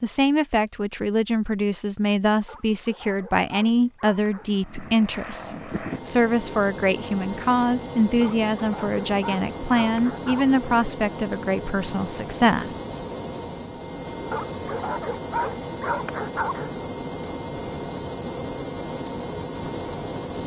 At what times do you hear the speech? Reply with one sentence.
You can hear the speech from 0.0 to 12.8 s.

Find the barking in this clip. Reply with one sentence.
You can hear the barking from 2.5 to 4.6 s, from 8.2 to 10.6 s and from 14.3 to 16.8 s.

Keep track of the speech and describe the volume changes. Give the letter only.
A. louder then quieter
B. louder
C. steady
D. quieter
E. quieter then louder
C.